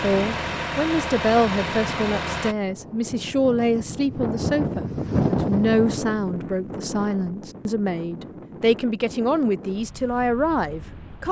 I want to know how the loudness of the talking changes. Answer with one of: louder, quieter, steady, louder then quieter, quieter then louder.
steady.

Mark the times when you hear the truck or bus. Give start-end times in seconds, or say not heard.
0.0-2.5.